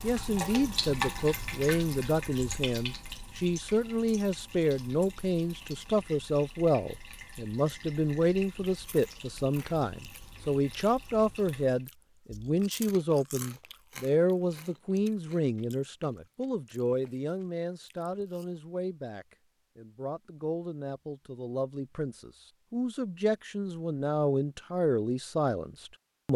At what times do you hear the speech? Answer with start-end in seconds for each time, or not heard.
0.0-26.3.